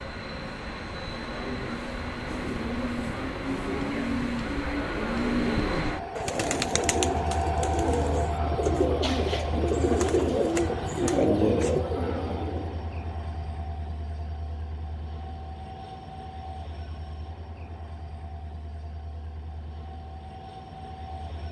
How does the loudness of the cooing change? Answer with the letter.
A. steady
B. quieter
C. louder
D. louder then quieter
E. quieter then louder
C.